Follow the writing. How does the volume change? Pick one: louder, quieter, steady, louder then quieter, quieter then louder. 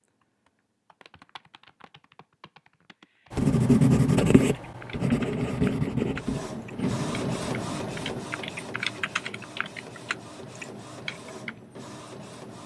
quieter.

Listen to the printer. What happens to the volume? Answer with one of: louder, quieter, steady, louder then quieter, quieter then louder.
quieter.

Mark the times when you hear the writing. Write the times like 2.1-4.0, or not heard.
3.3-8.2.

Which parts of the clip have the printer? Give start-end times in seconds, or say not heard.
6.0-12.6.